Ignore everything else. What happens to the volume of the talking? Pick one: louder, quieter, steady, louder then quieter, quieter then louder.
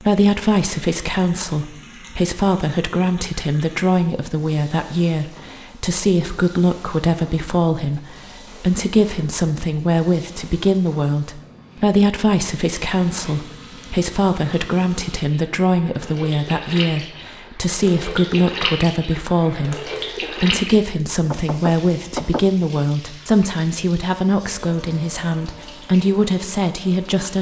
steady.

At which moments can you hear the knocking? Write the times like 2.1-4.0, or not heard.
21.3-22.4.